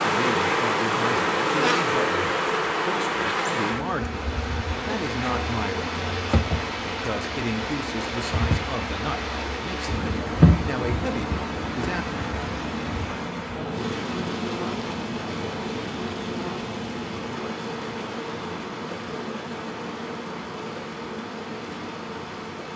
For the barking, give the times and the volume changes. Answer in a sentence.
You can't hear the barking here.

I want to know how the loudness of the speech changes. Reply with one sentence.
The volume of the speech stays about the same.